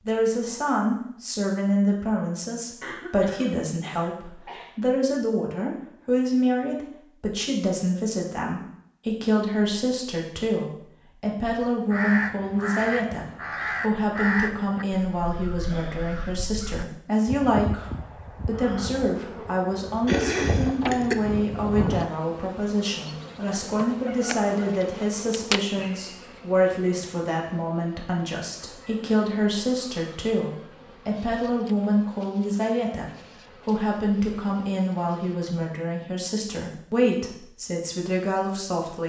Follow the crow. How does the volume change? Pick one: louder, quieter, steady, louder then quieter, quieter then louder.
quieter then louder.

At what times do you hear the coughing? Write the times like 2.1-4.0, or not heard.
2.8-4.8, 20.1-21.1.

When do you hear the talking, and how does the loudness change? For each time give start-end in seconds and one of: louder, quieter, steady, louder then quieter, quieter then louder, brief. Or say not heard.
0.1-39.0 steady.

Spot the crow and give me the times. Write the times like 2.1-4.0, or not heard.
11.6-22.2.